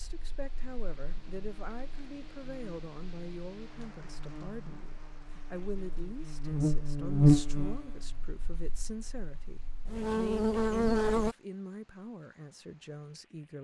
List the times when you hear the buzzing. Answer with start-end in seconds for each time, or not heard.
0.0-11.3.